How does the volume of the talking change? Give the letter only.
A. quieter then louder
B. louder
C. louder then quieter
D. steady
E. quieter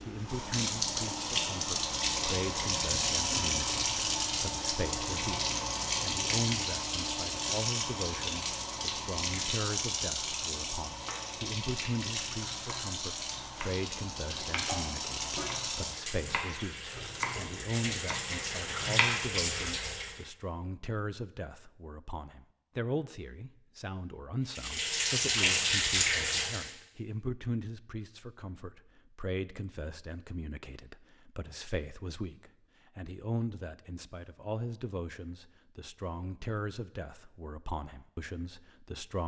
D.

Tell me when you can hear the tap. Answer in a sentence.
You can hear the tap from 0.0 to 20.2 s and from 24.5 to 26.8 s.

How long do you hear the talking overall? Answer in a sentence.
You can hear the talking for 39 seconds altogether.